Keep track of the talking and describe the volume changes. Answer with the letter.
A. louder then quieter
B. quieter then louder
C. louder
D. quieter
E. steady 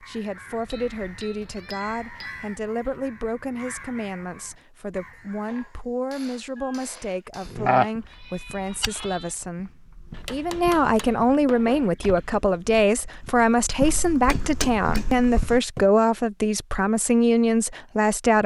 C.